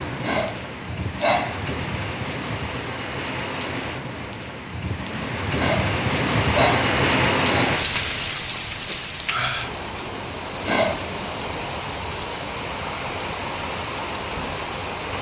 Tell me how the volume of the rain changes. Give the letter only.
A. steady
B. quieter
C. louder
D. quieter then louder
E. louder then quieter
E.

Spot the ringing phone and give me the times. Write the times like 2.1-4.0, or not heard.
not heard.